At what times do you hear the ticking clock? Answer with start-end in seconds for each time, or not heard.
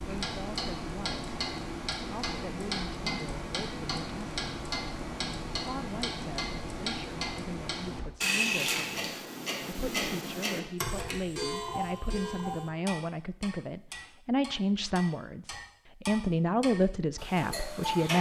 0.0-18.1.